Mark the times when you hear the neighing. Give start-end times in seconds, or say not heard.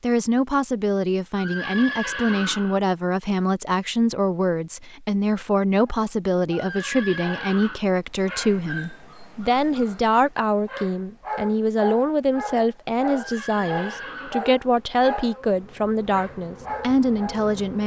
1.3-2.8, 6.5-7.8, 13.1-14.5.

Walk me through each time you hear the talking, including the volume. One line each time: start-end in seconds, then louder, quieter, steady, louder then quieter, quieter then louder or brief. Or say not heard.
0.0-17.8 steady.